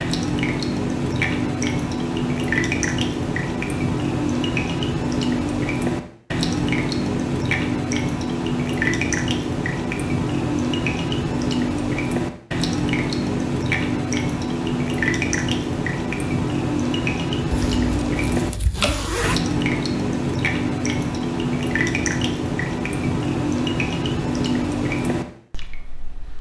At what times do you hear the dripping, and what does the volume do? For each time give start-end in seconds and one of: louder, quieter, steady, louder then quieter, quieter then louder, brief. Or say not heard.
0.0-26.3 steady.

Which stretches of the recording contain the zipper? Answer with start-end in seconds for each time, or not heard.
17.5-19.4.